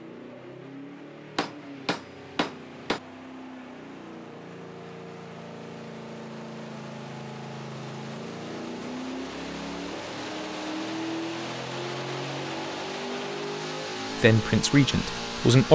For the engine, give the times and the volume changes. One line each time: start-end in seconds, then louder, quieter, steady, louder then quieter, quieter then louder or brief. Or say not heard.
0.0-15.7 louder.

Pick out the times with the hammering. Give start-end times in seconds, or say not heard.
1.4-3.0.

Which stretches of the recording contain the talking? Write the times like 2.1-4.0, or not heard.
14.2-15.7.